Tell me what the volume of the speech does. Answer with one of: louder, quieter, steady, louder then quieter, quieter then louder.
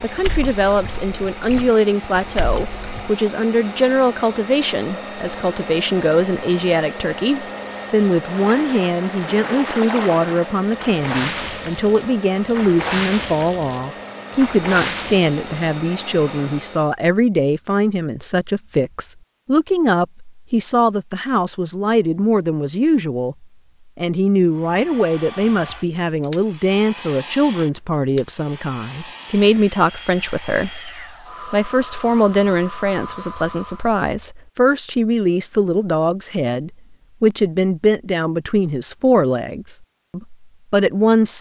steady.